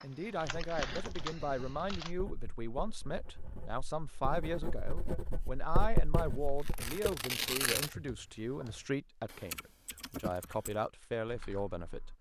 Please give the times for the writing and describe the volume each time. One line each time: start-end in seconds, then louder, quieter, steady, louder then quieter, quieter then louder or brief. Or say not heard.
0.3-7.0 quieter then louder.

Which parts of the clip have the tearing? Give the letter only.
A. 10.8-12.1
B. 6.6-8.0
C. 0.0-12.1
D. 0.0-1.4
B.